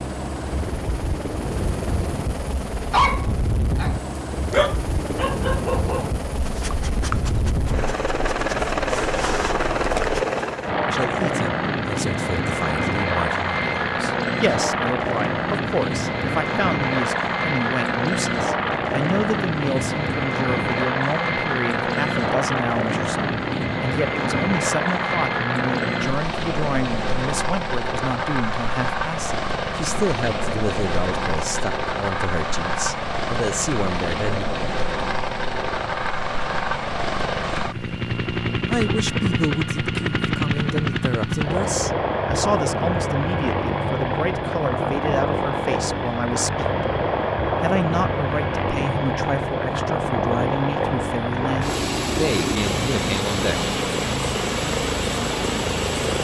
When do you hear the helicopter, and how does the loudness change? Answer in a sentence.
The helicopter can be heard from 0.0 to 56.1 s, at a steady volume.